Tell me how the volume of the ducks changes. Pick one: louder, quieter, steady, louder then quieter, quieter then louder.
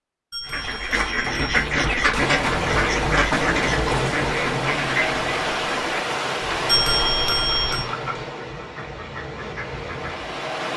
quieter.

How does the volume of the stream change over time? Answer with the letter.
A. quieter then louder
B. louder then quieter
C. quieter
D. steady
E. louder
C.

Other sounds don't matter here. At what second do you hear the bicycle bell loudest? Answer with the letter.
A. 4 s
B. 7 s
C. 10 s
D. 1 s
B.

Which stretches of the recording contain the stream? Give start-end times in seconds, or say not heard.
2.2-10.7.